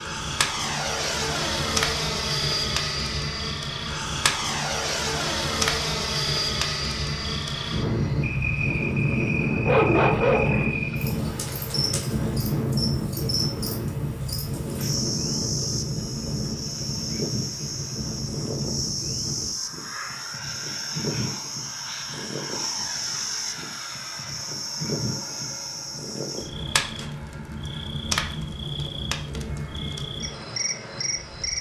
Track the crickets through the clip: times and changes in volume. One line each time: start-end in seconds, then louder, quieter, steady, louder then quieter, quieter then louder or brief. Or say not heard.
0.0-31.5 steady.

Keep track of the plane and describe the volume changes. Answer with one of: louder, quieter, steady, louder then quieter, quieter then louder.
quieter.